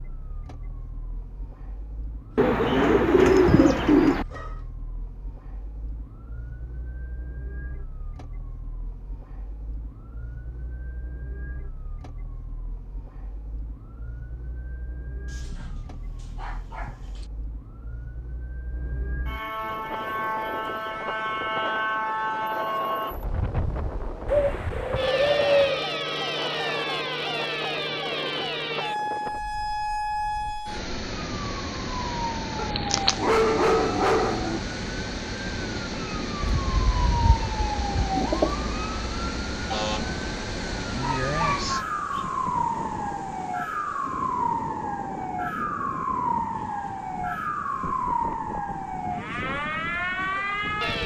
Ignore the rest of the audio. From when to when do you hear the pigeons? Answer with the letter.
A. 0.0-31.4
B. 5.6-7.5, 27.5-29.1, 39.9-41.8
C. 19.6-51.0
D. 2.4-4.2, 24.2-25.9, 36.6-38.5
D.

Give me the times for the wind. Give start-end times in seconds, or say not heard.
19.6-51.0.